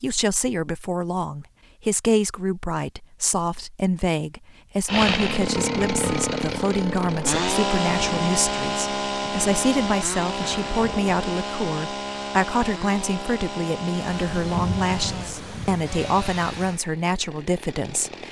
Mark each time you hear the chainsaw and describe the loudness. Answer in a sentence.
The chainsaw can be heard from 4.8 to 18.2 s, getting quieter.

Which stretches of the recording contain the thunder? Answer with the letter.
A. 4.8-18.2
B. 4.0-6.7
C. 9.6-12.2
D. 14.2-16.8
D.